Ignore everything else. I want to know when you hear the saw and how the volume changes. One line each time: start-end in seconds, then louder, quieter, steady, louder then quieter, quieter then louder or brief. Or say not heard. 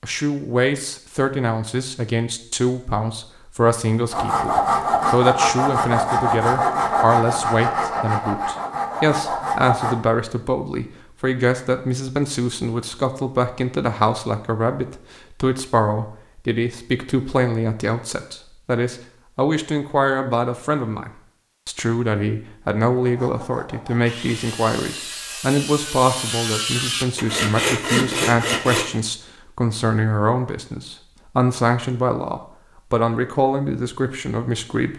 4.1-9.9 quieter
23.0-28.9 louder.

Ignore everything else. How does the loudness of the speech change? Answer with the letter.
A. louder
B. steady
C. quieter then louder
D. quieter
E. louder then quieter
B.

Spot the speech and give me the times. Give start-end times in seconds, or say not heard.
0.0-34.9.